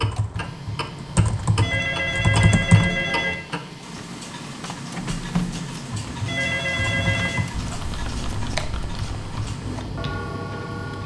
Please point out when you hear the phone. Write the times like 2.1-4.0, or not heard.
1.6-3.4, 6.2-7.5.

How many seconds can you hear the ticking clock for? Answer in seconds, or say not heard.
11 s.